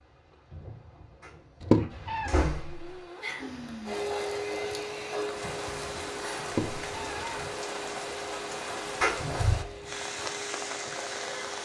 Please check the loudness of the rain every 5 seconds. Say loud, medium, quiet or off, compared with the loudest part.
medium, loud, loud.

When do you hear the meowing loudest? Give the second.
2 s.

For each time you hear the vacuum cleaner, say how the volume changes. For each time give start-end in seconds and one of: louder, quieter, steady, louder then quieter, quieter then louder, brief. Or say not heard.
3.4-11.6 quieter.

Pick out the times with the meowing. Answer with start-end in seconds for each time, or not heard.
1.6-2.3, 6.5-7.3.